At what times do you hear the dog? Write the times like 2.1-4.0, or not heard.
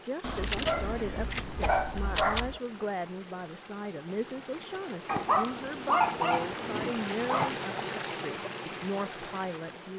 0.2-2.6, 5.0-7.5.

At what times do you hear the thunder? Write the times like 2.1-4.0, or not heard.
not heard.